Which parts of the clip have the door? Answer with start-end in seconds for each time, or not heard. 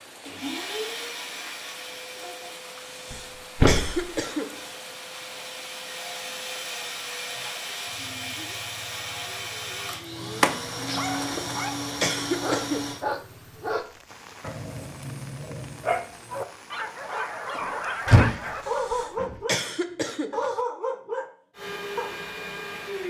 3.1-4.0, 10.4-11.6, 17.6-19.4.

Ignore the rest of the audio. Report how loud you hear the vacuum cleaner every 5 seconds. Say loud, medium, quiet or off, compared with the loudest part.
medium, loud, loud, off, loud.